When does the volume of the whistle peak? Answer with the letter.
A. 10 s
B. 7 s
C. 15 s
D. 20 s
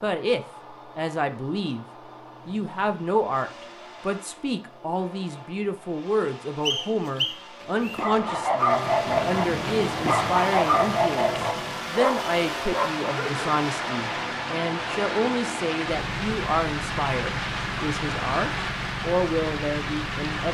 B.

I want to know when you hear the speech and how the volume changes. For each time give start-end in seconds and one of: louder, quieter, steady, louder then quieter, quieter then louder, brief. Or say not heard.
0.0-1.9 brief
2.5-20.4 steady.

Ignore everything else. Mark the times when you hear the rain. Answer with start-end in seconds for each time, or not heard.
8.8-20.4.